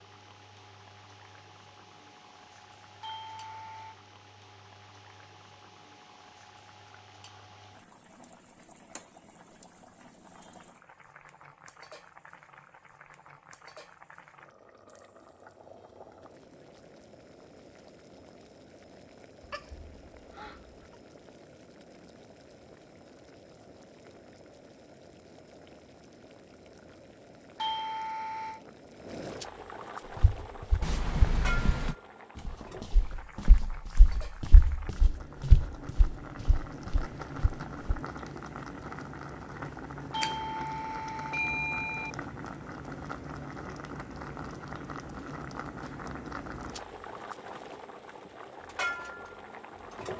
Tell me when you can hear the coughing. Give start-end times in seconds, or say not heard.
19.4-20.9, 30.8-31.9.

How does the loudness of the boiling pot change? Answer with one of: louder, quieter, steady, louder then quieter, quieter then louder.
louder.